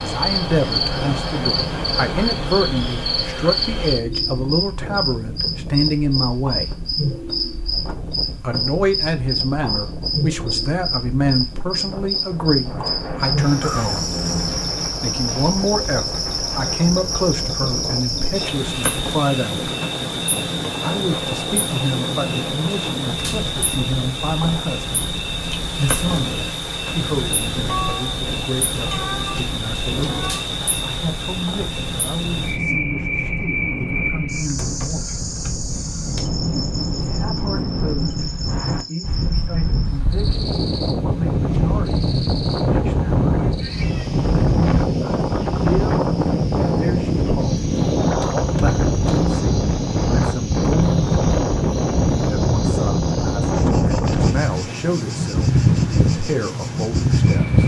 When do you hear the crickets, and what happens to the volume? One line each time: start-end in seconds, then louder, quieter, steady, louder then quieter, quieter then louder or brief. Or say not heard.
0.0-57.6 quieter.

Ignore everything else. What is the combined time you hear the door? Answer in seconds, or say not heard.
3 s.